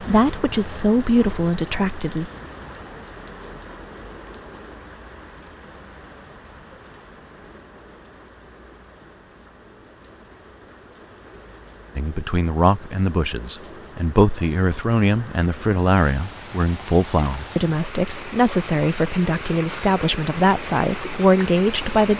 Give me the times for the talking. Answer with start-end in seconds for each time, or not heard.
0.0-2.3, 11.9-22.1.